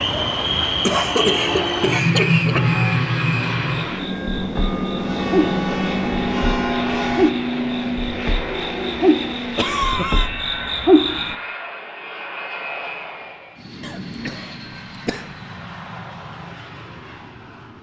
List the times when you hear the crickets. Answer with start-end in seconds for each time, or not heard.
0.0-11.3.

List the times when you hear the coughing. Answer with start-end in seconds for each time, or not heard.
0.8-2.8, 9.6-10.3, 13.8-15.3.